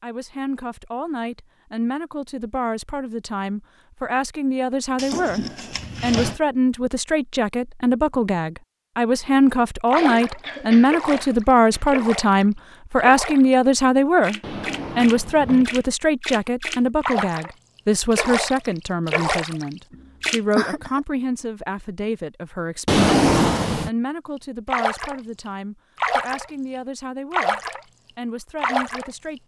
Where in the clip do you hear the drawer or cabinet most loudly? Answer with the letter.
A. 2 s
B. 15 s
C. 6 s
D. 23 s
D.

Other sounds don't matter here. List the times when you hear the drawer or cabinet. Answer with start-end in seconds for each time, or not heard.
5.0-6.3, 14.4-15.8, 22.9-23.9.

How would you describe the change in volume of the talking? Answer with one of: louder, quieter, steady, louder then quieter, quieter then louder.
louder then quieter.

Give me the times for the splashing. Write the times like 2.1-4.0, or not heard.
9.9-20.4, 24.7-27.9, 28.6-29.4.